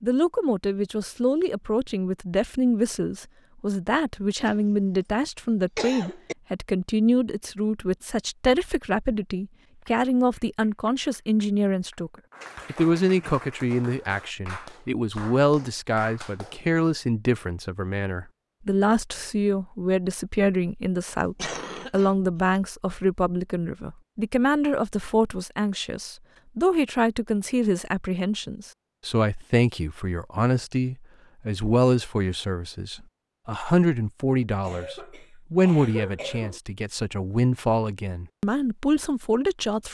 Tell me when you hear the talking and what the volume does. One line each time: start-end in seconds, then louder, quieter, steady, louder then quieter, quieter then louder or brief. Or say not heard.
0.0-12.1 steady
12.7-39.9 steady.